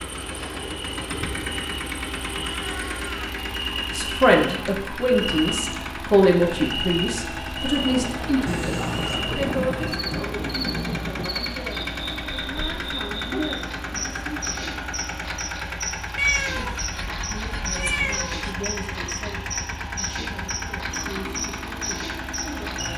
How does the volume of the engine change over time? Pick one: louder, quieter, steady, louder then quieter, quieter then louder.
steady.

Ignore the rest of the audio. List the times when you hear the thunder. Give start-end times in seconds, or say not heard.
7.8-11.3.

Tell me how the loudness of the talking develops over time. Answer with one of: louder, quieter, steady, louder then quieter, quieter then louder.
quieter.